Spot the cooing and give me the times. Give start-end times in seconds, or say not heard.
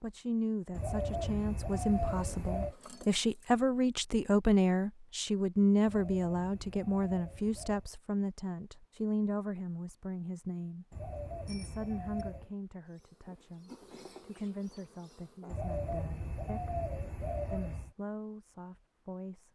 0.7-2.8, 5.8-7.9, 10.9-12.6, 15.4-17.9.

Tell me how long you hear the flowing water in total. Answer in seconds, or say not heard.
not heard.